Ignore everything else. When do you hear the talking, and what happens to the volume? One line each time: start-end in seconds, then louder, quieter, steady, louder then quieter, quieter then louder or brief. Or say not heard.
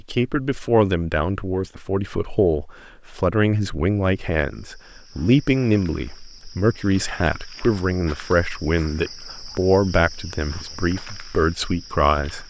0.0-12.4 steady.